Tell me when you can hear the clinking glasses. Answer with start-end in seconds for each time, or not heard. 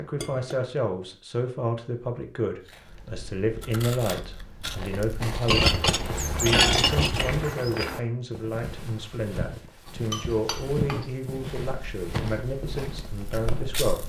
0.1-0.6, 5.5-7.5, 9.8-11.1.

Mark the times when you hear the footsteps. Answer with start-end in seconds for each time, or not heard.
5.6-13.9.